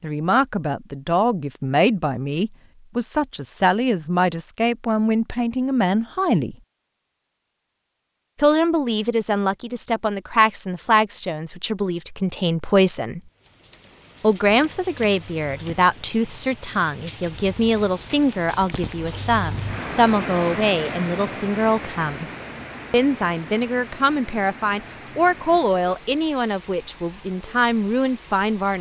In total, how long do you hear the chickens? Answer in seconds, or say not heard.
not heard.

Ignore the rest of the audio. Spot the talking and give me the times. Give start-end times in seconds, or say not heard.
0.0-6.5, 8.3-13.2, 14.2-22.2, 22.9-28.7.